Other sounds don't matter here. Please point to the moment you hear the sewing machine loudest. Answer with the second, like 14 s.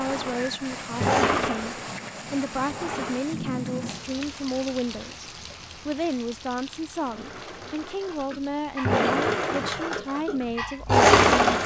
11 s.